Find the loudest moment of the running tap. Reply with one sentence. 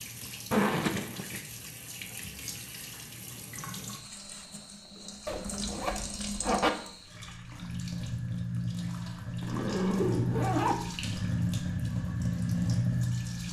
The loudest moment of the running tap is at 13 seconds.